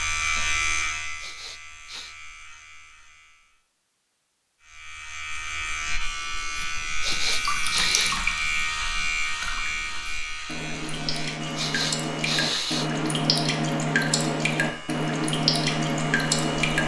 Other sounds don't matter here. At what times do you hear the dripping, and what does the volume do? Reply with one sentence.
The dripping can be heard from 6.5 to 16.8 s, getting quieter then louder.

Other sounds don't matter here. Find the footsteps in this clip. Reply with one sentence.
You can't hear the footsteps here.